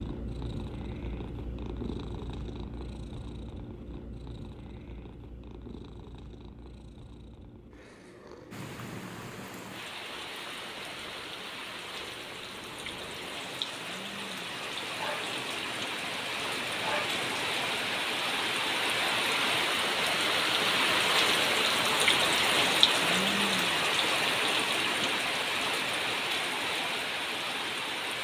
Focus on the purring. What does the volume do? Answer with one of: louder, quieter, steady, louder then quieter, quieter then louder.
quieter then louder.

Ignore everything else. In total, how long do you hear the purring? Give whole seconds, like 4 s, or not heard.
18 s.